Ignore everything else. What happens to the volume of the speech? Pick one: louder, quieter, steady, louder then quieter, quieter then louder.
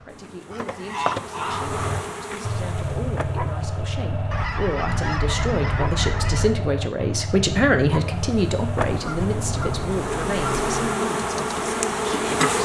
louder then quieter.